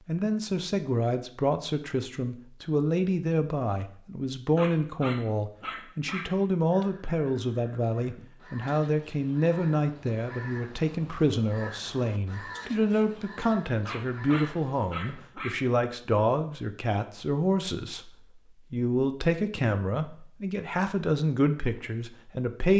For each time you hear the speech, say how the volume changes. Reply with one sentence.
You can hear the speech from 0.1 to 22.7 s, at a steady volume.